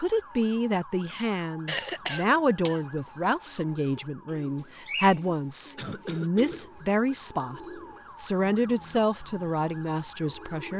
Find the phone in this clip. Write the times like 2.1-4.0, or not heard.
not heard.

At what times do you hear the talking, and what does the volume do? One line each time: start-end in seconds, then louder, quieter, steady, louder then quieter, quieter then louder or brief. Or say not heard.
0.0-10.7 steady.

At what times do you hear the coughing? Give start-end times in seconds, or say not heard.
1.6-3.3, 5.8-6.6.